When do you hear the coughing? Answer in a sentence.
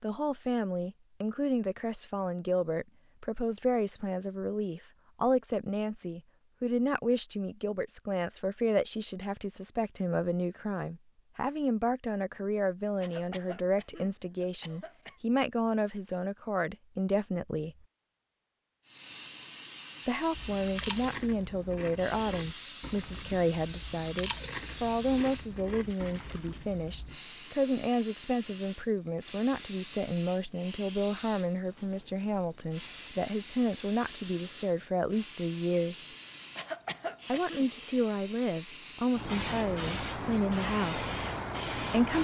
You can hear the coughing from 13.0 to 15.2 s and from 36.5 to 37.6 s.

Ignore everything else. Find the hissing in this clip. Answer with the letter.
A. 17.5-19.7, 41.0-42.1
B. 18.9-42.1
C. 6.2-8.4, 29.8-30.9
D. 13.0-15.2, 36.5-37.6
B.